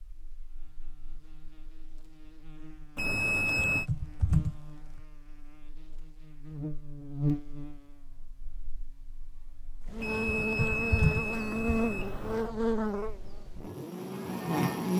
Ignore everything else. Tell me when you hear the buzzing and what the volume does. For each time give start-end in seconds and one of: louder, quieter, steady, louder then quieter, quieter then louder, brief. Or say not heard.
0.0-14.9 louder.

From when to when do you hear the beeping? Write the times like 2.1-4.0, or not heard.
3.0-3.9, 10.0-12.5.